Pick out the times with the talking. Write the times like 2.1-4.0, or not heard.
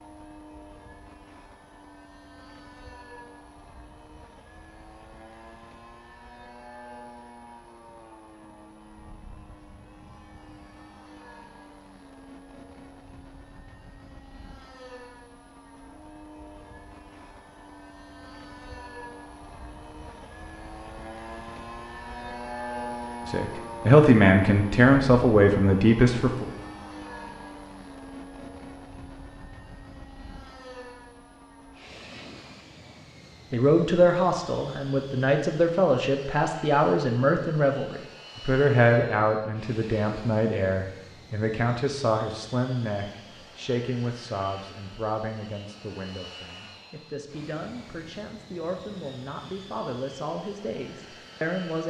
23.2-26.4, 33.5-51.8.